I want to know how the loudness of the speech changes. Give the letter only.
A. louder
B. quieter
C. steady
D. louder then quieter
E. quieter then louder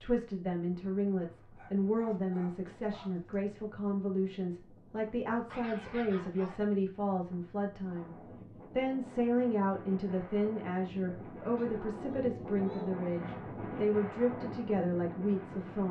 C.